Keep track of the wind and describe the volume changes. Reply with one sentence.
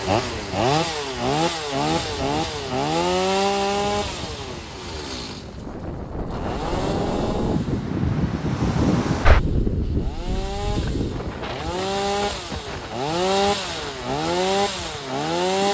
The volume of the wind goes up, then down.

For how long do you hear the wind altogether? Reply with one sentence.
The wind can be heard for 16 seconds in total.